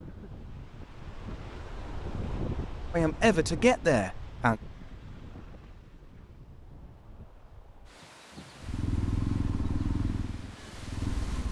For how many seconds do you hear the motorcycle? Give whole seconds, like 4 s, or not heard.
3 s.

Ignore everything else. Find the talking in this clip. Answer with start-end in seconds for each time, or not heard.
2.9-4.6.